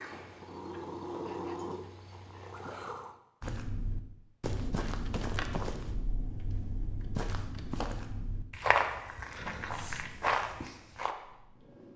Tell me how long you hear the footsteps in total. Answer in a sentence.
You can hear the footsteps for 8 seconds altogether.